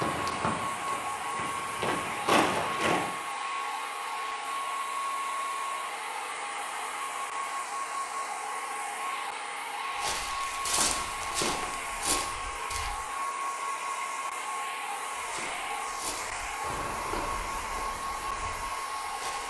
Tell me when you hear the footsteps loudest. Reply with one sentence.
The volume of the footsteps peaks at 2 seconds.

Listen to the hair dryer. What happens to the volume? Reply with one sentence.
The loudness of the hair dryer stays about the same.